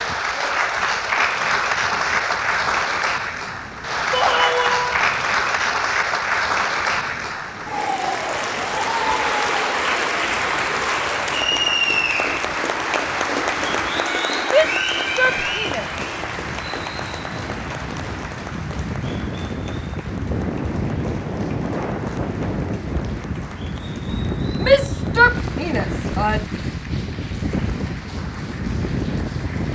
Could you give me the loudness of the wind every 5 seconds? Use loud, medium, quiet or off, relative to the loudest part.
quiet, quiet, quiet, medium, loud, loud.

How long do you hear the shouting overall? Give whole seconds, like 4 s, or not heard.
4 s.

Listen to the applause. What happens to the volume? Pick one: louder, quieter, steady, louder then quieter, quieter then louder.
quieter.